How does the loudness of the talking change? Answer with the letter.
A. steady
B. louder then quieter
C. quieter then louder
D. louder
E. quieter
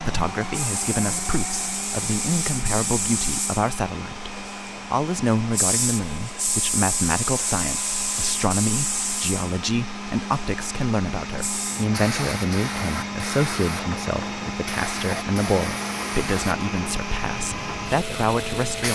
A.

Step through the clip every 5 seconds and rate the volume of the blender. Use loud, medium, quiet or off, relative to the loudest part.
loud, medium, loud, loud.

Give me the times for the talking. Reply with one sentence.
The talking can be heard from 0.0 to 18.9 s.